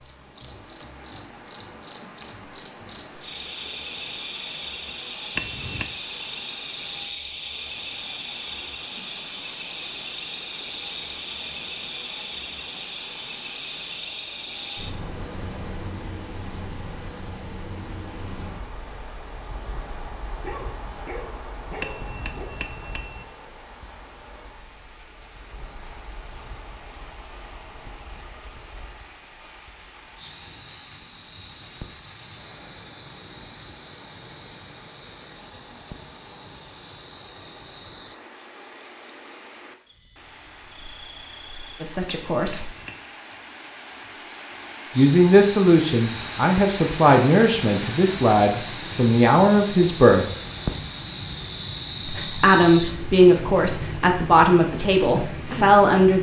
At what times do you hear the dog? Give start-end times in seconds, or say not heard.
20.4-22.6.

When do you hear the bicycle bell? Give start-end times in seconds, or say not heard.
5.3-6.0, 21.8-23.2, 42.0-43.0.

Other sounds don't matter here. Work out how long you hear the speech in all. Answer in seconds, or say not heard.
10 s.